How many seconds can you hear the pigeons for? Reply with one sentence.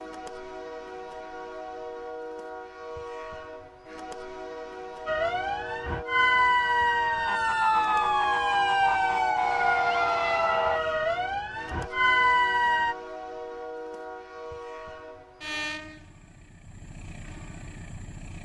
You can't hear the pigeons here.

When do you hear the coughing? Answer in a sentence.
The coughing can't be heard in this clip.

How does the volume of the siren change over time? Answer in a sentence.
The volume of the siren stays about the same.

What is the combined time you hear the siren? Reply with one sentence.
The siren can be heard for 8 seconds in total.